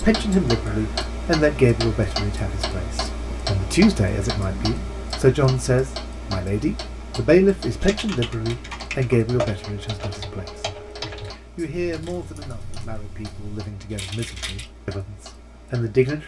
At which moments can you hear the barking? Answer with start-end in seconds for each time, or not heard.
not heard.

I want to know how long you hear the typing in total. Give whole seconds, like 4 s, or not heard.
7 s.